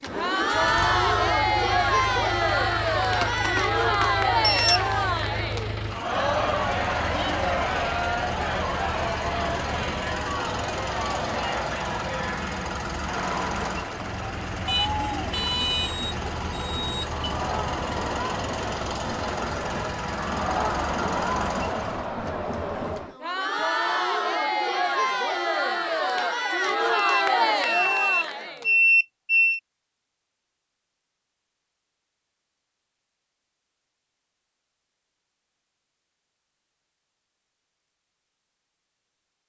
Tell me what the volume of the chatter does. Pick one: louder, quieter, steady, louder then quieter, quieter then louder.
quieter then louder.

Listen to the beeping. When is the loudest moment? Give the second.
29 s.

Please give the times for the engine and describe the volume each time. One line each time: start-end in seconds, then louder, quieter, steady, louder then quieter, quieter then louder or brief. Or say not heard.
0.0-22.1 steady.